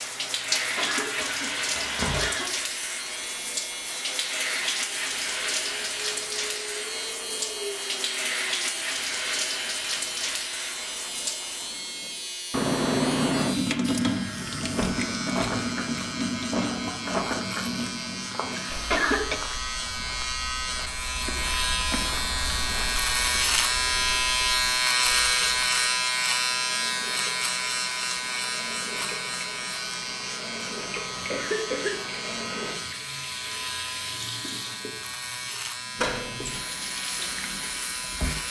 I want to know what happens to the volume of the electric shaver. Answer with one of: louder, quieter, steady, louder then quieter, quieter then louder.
louder then quieter.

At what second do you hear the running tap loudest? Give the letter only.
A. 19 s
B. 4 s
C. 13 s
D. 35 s
C.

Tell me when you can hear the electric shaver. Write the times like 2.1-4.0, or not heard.
0.0-38.4.